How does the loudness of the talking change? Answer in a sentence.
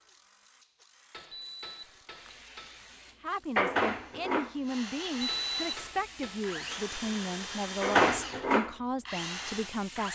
The volume of the talking stays about the same.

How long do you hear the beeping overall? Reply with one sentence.
The beeping can be heard for 2 seconds in total.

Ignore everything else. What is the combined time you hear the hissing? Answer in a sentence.
The hissing can be heard for 8 seconds in total.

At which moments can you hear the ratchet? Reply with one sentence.
The ratchet can't be heard in this clip.